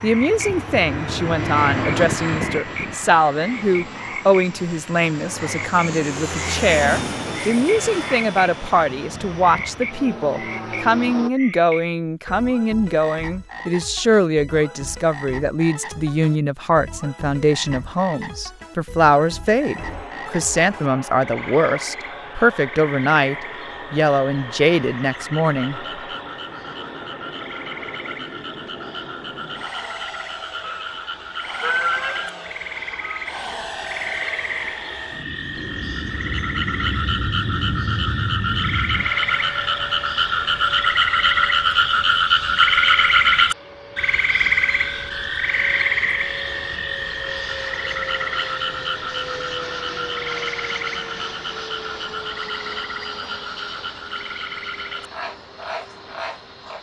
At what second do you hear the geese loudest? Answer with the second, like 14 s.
32 s.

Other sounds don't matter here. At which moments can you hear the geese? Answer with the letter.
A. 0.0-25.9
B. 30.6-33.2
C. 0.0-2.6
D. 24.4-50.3
B.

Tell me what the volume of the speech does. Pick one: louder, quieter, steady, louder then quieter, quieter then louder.
steady.